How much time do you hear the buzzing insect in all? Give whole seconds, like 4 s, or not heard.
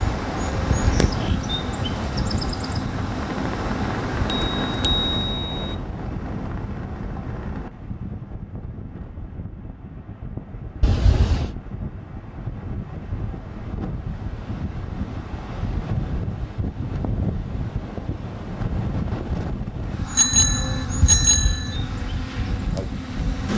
9 s.